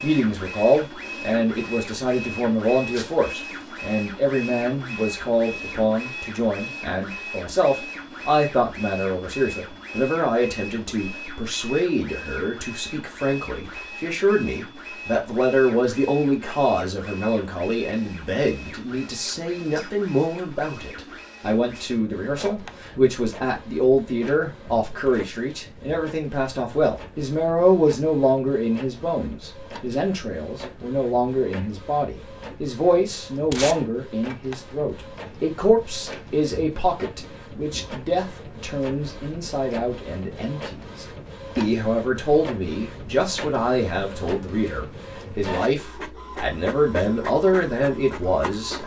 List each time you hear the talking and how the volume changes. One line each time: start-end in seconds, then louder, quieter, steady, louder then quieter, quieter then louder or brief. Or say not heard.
0.0-48.8 steady.